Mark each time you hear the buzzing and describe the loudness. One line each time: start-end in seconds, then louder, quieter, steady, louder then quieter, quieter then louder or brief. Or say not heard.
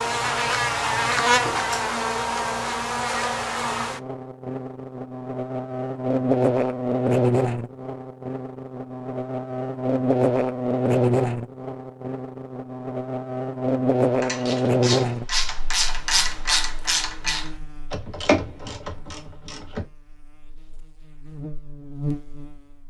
0.0-22.8 quieter.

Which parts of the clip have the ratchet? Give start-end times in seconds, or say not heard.
14.2-19.9.